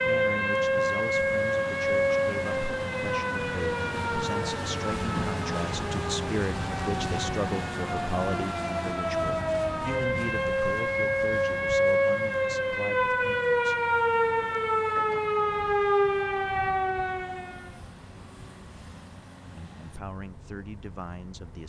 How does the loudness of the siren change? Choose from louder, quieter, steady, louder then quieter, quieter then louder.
quieter then louder.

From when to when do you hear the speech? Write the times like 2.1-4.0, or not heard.
0.0-13.8, 19.6-21.6.